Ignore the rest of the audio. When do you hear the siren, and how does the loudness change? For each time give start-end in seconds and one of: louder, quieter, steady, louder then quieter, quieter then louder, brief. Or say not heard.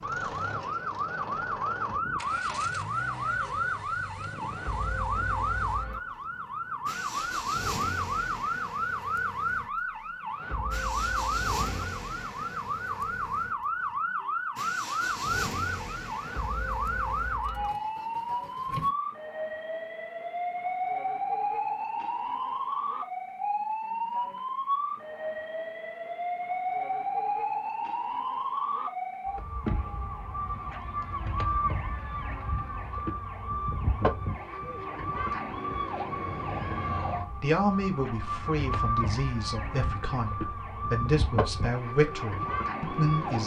0.0-43.4 steady.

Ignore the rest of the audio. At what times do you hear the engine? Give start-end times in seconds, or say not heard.
0.0-18.9.